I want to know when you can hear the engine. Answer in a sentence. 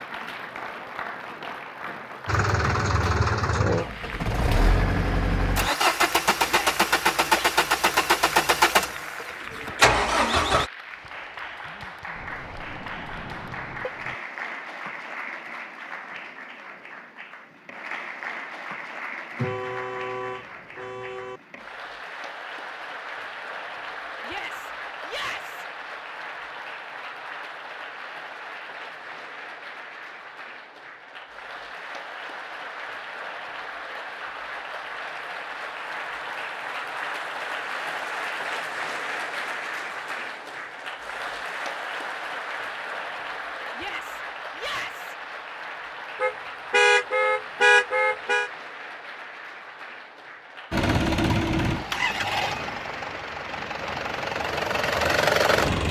You can hear the engine from 2.2 to 10.7 s and from 50.7 to 55.8 s.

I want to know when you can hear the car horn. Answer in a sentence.
The car horn can be heard from 12.2 to 14.2 s, from 19.4 to 21.4 s and from 46.2 to 48.5 s.